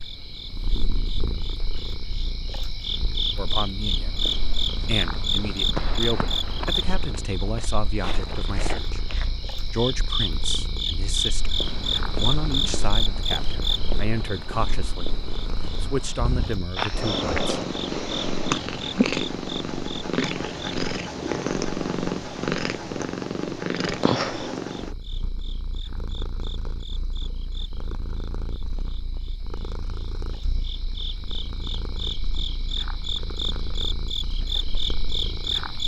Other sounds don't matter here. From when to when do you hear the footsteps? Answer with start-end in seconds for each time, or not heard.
3.8-9.6, 11.3-17.6.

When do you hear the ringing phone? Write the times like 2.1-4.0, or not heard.
not heard.